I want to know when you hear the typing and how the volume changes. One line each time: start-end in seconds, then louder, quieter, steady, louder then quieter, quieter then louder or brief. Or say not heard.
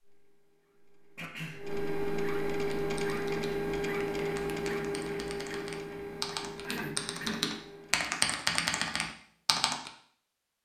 2.8-9.9 louder.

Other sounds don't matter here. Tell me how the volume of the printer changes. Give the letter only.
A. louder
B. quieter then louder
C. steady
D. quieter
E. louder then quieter
E.